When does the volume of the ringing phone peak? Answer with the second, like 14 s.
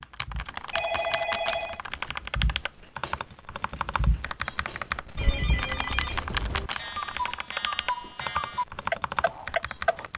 1 s.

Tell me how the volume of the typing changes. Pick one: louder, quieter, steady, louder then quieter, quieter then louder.
steady.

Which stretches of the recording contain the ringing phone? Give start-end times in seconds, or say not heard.
0.7-1.8, 5.2-6.7.